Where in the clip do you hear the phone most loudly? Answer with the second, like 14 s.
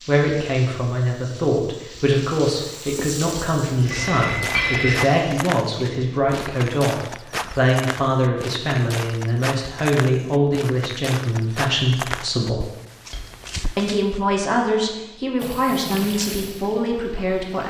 5 s.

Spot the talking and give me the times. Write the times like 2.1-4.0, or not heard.
0.1-12.7, 13.8-17.6.